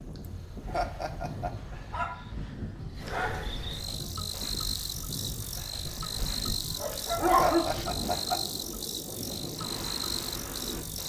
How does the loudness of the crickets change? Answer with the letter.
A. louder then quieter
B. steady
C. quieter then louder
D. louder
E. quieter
D.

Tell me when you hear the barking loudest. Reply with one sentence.
The volume of the barking peaks at 7 seconds.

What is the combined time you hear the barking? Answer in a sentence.
You can hear the barking for 4 seconds altogether.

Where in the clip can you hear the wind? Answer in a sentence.
The wind can be heard from 0.0 to 11.0 s.